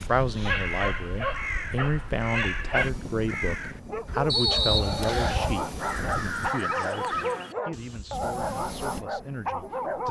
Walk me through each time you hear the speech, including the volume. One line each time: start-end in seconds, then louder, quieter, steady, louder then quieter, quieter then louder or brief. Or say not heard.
0.1-10.0 quieter.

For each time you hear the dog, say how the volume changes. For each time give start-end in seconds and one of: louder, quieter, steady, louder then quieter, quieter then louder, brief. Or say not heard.
0.0-10.0 steady.